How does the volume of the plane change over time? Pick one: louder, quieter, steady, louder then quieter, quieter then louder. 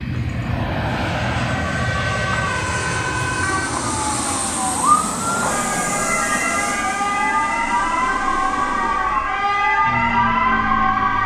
quieter.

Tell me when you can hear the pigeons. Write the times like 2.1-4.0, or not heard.
not heard.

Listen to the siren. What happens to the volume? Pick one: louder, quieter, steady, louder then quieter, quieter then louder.
louder.